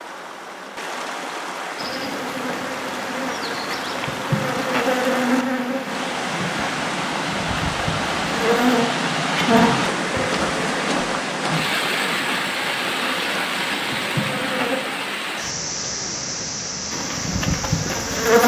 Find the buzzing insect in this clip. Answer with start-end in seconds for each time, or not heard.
1.8-14.8, 16.9-18.4.